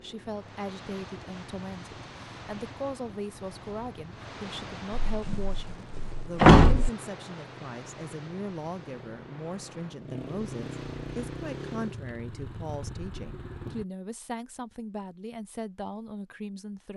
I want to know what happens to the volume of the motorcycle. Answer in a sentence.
The volume of the motorcycle goes up.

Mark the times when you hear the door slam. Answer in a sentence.
You can hear the door slam from 5.0 to 6.9 s.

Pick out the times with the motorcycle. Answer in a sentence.
The motorcycle can be heard from 0.0 to 13.8 s.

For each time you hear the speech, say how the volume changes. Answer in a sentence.
The speech can be heard from 0.0 to 16.9 s, at a steady volume.